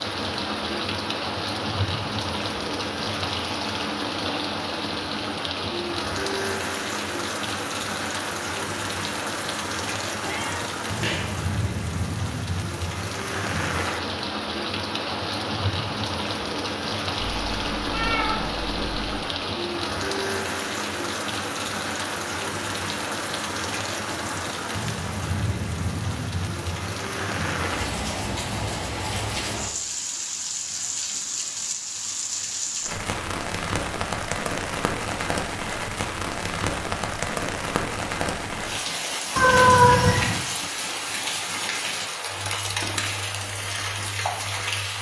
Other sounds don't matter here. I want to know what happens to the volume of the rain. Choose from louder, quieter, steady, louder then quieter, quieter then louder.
steady.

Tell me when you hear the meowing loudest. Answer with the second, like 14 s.
40 s.